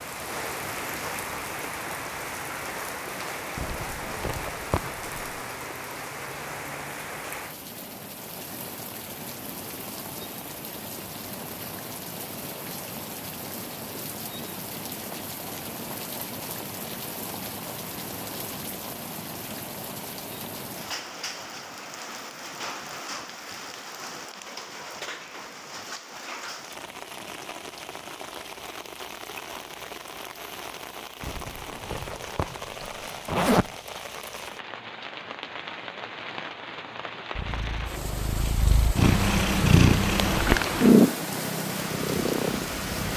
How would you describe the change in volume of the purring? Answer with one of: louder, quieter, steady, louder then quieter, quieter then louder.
louder then quieter.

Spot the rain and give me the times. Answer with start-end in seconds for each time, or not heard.
0.0-43.1.